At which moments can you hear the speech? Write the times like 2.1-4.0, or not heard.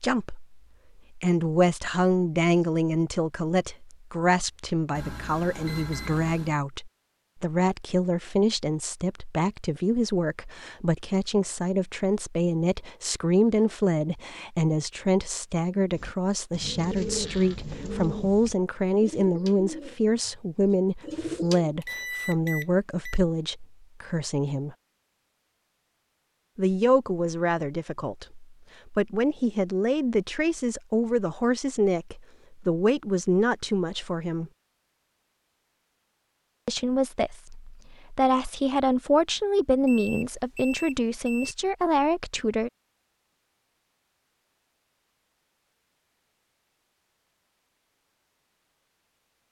0.0-24.8, 26.6-34.5, 36.6-42.7.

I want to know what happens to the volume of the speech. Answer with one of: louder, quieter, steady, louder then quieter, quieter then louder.
steady.